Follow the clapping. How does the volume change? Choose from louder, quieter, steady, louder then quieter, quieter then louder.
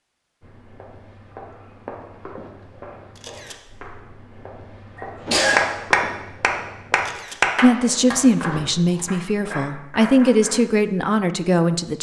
quieter.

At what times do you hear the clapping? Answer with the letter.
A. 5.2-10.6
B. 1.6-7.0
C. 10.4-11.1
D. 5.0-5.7
A.